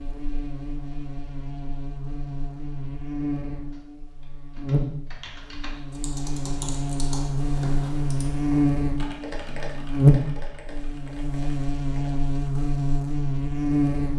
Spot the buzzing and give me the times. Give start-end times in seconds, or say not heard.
0.0-14.1.